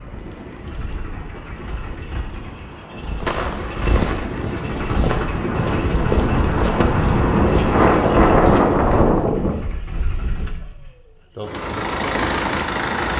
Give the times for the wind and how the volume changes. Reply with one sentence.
The wind can be heard from 0.0 to 9.6 s, getting louder.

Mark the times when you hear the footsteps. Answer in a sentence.
You can hear the footsteps from 3.1 to 9.2 s.